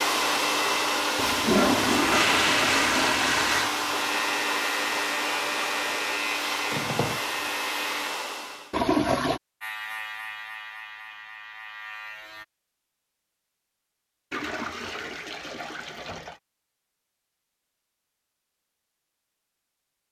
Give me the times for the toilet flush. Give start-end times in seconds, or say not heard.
1.1-3.7, 8.7-9.4, 14.3-16.4.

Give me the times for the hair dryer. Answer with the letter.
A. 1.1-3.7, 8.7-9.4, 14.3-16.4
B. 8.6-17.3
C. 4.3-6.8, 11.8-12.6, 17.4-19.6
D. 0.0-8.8
D.